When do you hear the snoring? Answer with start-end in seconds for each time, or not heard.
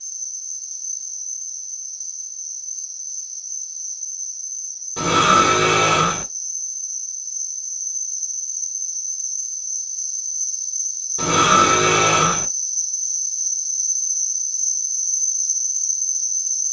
5.0-6.2, 11.2-12.4.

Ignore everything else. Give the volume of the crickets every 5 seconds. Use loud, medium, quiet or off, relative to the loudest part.
medium, medium, loud, loud.